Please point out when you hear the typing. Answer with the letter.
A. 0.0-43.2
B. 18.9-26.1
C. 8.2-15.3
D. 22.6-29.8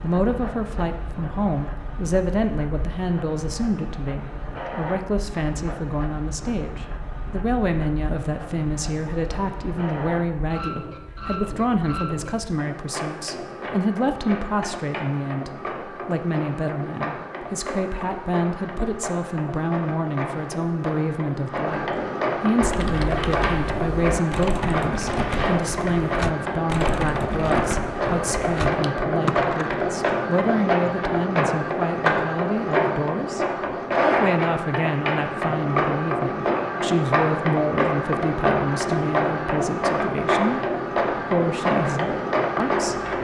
D.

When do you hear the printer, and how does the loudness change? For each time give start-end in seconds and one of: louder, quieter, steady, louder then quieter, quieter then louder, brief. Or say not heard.
0.0-43.2 louder.